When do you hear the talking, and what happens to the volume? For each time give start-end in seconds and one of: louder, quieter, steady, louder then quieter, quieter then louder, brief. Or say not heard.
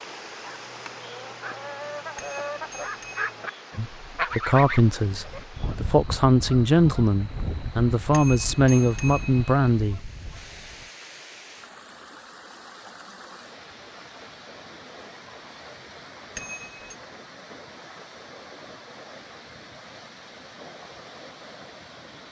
3.8-10.1 steady.